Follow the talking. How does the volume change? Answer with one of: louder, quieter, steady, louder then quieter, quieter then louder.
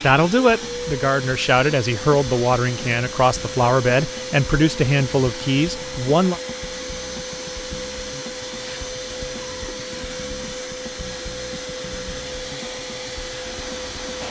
steady.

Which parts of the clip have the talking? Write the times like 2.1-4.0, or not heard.
0.0-6.4.